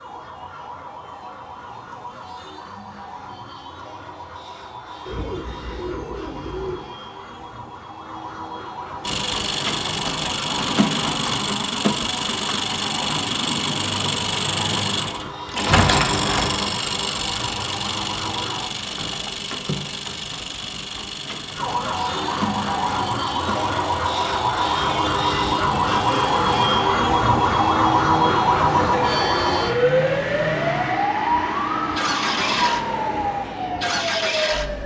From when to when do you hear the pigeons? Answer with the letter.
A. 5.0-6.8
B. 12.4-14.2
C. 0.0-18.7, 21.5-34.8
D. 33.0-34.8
A.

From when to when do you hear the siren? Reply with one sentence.
The siren can be heard from 0.0 to 18.7 s and from 21.5 to 34.8 s.